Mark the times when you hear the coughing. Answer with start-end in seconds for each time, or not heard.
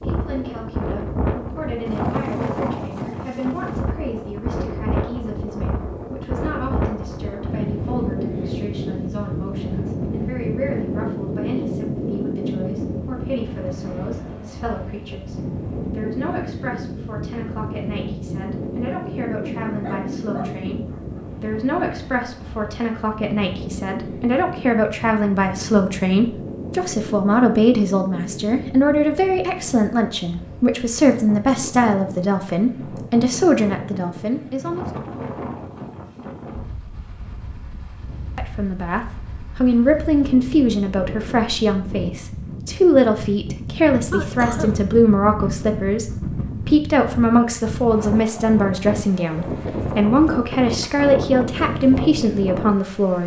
44.1-44.9.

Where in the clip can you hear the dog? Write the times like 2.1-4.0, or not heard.
19.6-21.2.